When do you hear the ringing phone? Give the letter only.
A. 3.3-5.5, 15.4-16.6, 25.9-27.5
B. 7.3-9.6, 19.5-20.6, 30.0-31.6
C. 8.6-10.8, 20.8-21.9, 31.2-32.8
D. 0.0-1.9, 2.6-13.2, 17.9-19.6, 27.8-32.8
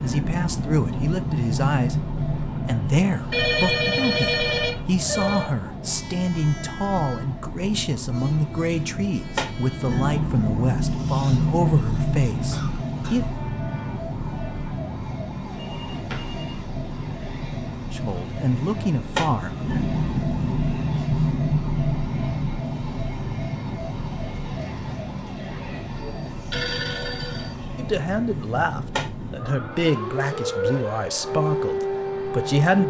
A.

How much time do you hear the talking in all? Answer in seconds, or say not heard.
19 s.